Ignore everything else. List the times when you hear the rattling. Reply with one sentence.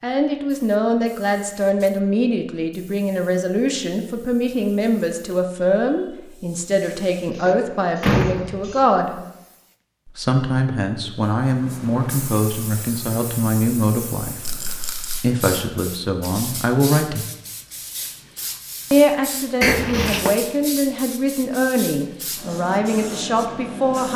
The rattling can be heard from 14.4 to 15.2 s.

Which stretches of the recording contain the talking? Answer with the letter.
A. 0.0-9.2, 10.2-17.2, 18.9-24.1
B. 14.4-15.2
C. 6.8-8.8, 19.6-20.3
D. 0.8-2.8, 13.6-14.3
A.